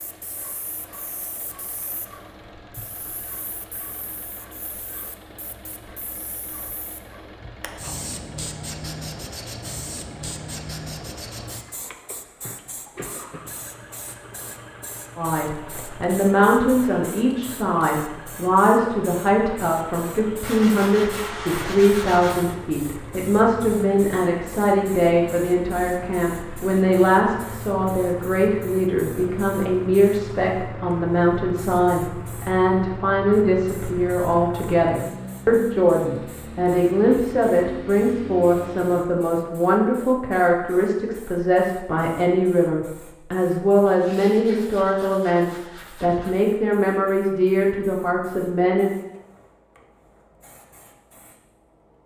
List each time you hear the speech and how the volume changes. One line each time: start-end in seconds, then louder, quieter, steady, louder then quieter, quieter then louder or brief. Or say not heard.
15.2-48.9 steady.